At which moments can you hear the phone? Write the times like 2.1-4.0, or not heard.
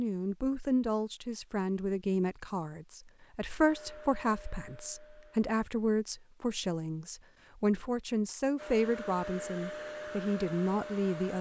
not heard.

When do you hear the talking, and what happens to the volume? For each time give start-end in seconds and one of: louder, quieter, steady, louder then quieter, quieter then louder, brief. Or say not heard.
0.0-11.3 steady.